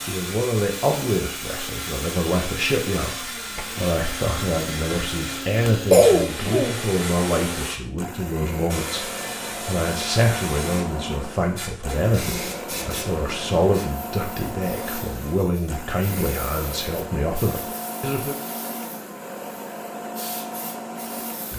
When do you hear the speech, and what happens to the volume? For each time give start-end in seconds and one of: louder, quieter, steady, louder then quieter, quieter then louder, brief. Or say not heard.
0.0-18.4 steady.